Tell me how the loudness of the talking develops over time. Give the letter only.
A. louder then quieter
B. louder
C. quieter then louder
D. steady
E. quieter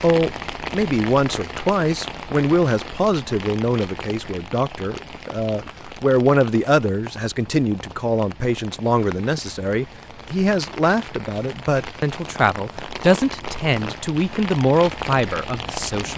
D.